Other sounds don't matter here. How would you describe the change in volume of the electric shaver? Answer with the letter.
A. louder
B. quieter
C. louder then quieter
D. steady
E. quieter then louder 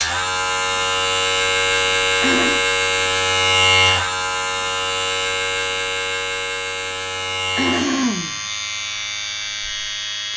B.